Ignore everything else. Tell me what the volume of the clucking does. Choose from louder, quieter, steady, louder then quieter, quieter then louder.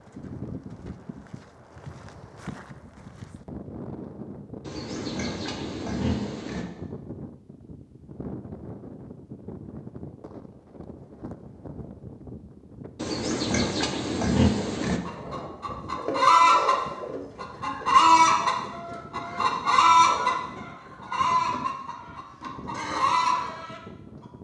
quieter.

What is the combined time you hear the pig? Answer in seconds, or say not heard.
4 s.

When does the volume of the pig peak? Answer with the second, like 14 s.
14 s.